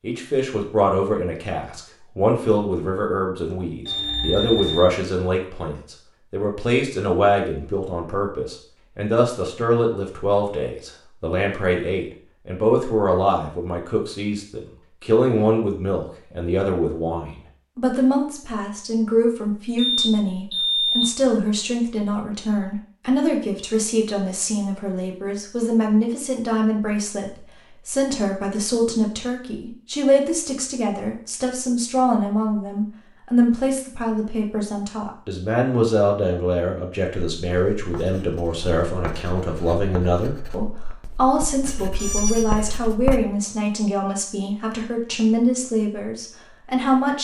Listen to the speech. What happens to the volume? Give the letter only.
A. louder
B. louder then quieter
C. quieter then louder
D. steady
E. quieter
D.